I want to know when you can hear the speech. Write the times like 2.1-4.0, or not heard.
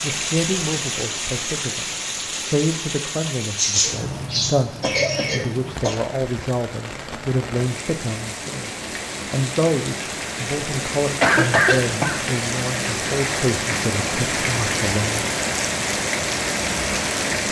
0.0-15.3.